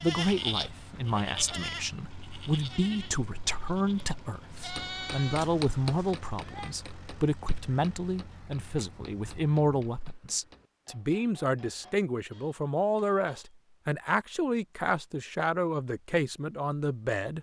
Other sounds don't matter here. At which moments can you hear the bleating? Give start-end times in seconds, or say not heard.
0.0-6.7.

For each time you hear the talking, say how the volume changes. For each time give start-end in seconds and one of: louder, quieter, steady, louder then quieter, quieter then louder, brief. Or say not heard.
0.0-17.3 steady.